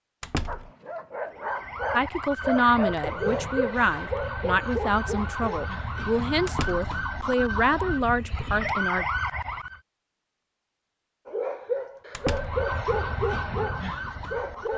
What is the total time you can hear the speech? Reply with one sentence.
You can hear the speech for 7 seconds altogether.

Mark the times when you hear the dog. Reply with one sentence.
You can hear the dog from 0.5 to 6.0 s and from 11.2 to 14.7 s.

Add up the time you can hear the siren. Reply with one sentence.
The siren can be heard for 11 seconds in total.